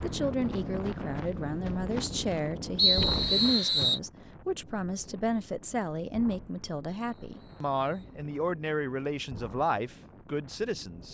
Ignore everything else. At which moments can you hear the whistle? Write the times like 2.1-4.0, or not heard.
2.8-4.0, 7.0-8.2.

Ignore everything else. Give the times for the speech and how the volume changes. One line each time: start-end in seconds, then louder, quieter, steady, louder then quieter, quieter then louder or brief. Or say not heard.
0.0-11.0 steady.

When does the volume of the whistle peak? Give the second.
3 s.